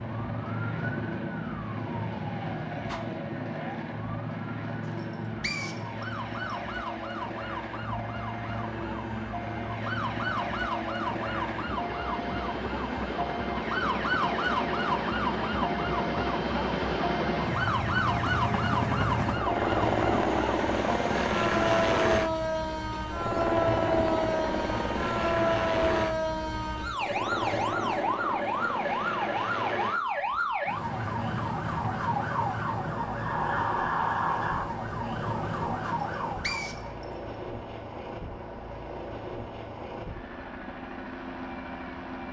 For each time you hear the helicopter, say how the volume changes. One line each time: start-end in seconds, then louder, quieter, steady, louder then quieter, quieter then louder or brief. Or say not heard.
0.0-42.2 louder then quieter.